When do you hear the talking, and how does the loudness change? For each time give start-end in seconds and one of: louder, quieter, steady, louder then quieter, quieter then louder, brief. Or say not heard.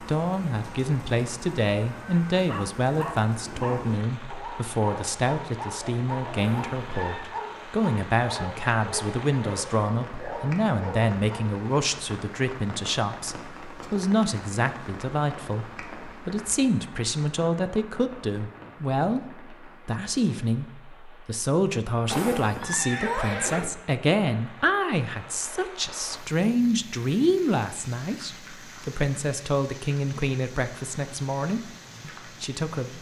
0.0-32.9 steady.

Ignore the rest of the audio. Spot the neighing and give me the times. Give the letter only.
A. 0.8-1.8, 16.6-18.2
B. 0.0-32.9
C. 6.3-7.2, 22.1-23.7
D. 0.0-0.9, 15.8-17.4
C.